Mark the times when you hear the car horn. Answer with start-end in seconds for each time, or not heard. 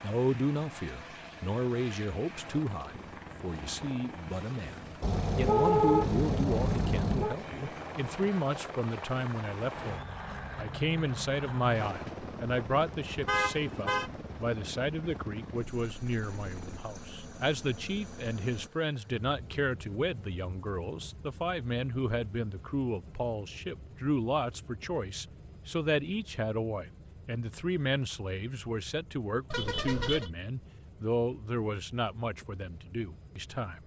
5.0-7.4, 13.2-14.1, 29.5-30.3.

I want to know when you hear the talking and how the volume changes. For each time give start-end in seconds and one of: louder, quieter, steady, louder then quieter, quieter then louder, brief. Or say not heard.
0.0-33.8 steady.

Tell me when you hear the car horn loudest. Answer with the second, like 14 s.
6 s.